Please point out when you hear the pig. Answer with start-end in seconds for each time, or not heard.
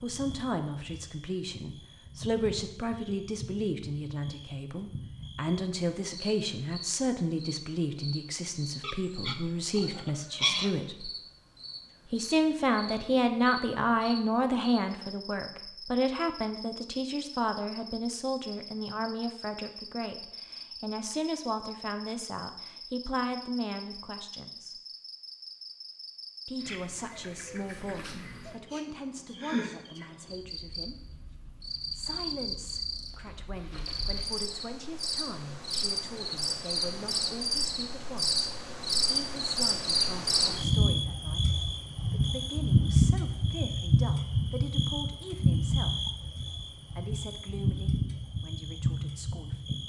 8.8-10.7.